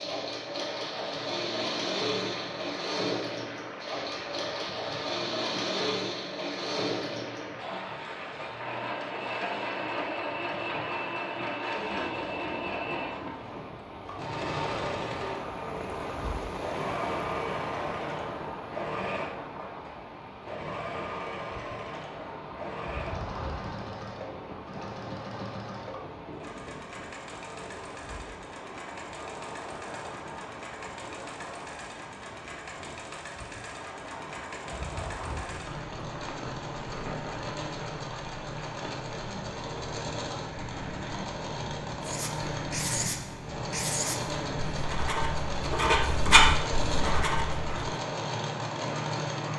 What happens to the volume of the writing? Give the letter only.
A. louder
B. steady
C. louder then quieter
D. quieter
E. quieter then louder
A.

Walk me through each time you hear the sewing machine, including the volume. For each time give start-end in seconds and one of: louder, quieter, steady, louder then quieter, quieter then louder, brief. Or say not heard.
0.0-49.5 quieter then louder.